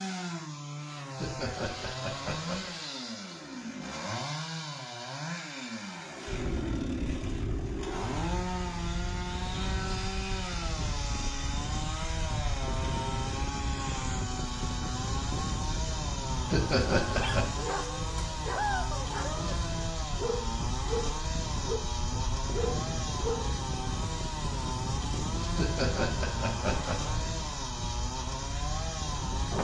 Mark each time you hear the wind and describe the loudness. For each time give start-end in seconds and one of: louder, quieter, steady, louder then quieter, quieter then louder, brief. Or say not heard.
6.2-29.5 steady.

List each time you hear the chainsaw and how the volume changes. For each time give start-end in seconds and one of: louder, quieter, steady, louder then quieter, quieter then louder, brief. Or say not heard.
0.0-29.5 steady.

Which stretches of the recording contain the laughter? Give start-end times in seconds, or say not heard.
1.1-2.8, 16.5-17.6, 25.6-27.2.